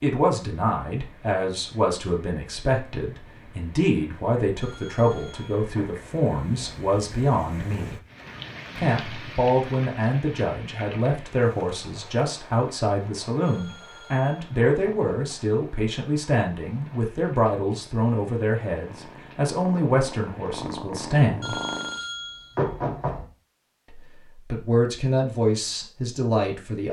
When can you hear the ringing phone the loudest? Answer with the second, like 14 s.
23 s.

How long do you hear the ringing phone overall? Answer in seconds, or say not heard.
5 s.